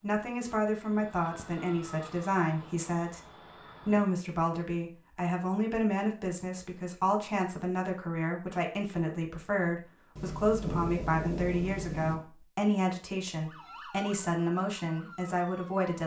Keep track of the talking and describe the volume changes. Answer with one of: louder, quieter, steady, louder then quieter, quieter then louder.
steady.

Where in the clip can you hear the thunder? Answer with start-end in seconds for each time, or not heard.
10.2-12.2.